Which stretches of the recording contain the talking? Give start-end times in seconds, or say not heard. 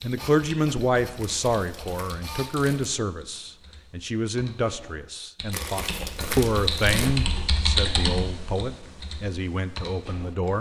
0.0-10.5.